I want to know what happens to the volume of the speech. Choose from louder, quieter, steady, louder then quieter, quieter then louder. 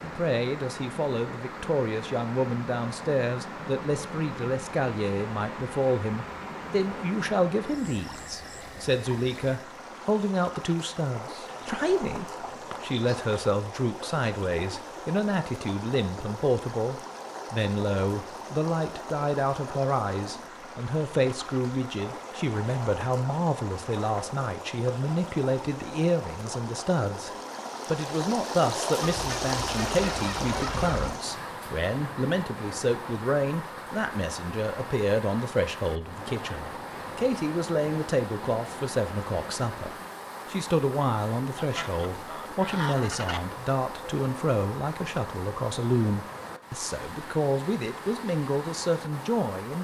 steady.